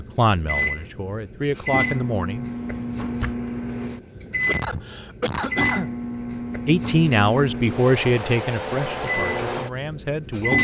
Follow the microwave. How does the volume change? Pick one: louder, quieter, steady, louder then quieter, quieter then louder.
steady.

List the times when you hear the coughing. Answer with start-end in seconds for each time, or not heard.
4.2-5.9.